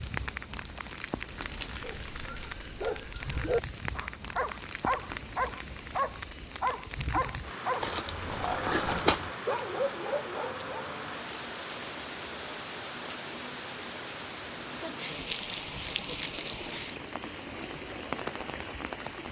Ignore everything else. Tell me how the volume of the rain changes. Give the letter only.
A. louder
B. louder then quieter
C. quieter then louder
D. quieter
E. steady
E.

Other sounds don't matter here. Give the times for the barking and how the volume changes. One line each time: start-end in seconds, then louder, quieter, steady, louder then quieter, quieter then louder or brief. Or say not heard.
1.8-10.8 steady.